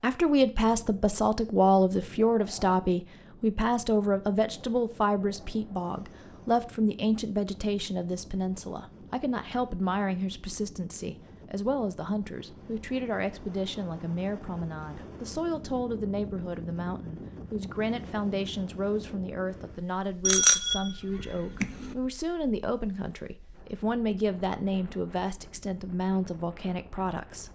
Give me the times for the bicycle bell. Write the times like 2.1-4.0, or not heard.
20.2-21.9.